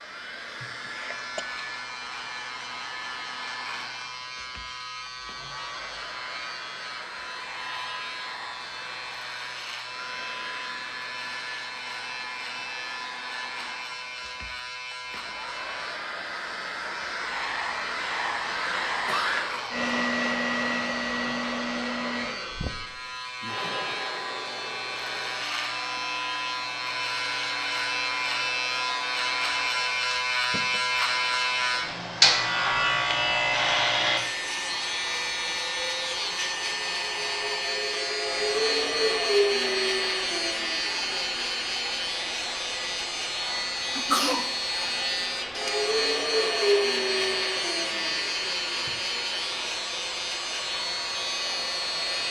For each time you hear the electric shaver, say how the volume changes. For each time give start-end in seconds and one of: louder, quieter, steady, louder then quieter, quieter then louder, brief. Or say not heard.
0.0-52.2 louder.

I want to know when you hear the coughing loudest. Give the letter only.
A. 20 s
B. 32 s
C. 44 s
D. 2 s
C.